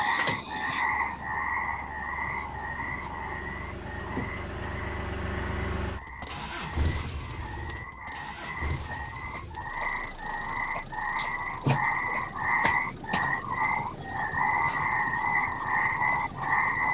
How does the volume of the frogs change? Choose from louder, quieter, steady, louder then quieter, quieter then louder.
quieter then louder.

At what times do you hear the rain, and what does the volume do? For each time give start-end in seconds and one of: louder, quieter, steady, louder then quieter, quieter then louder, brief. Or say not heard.
not heard.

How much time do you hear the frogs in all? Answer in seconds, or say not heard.
17 s.